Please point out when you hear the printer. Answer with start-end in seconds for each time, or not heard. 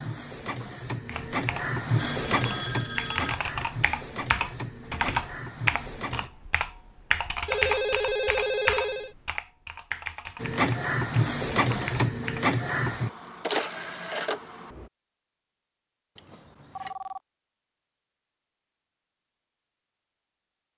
0.0-6.3, 10.4-14.8.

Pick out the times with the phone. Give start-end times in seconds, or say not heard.
1.9-3.4, 7.5-9.2, 16.1-17.2.